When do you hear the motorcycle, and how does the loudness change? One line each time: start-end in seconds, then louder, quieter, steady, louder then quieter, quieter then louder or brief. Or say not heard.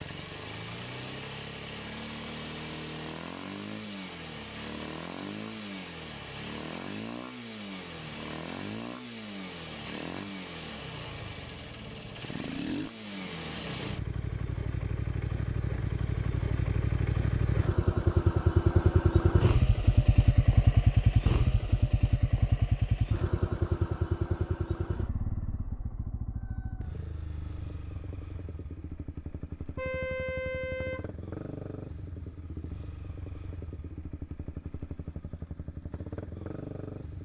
0.0-37.1 louder then quieter.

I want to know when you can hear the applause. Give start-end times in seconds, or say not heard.
not heard.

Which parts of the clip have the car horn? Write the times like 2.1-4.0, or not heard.
29.8-31.1.